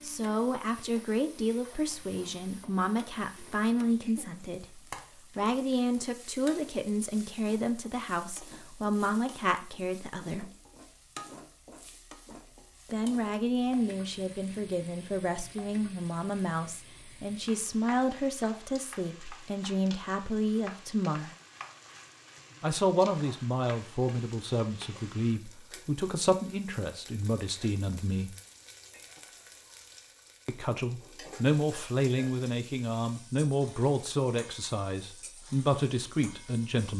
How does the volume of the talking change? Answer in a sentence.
The volume of the talking stays about the same.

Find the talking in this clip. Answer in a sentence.
The talking can be heard from 0.0 to 10.5 s, from 12.9 to 21.4 s, from 22.6 to 28.4 s and from 30.4 to 36.9 s.